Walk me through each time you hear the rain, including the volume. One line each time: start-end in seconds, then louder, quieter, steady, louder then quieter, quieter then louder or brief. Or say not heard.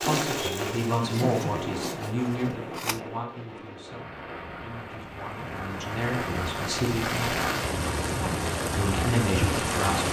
0.0-10.0 quieter then louder.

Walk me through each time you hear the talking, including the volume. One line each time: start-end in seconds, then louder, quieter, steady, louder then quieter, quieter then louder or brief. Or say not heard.
0.0-7.3 quieter then louder
8.8-10.0 brief.